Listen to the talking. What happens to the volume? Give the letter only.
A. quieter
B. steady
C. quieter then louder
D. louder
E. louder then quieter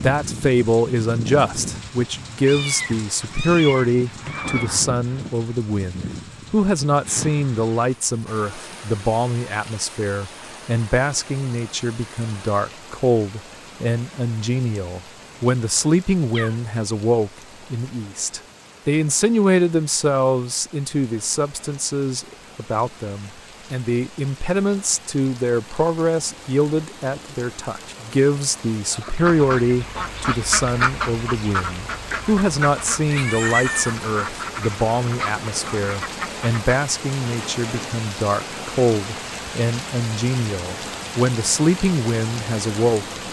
B.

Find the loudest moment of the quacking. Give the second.
31 s.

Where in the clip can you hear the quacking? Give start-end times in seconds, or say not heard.
29.0-36.6.